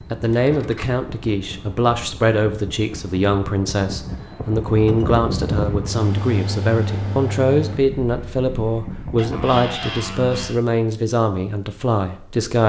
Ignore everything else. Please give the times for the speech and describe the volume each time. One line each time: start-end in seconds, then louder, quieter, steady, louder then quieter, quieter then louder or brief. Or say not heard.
0.1-12.6 steady.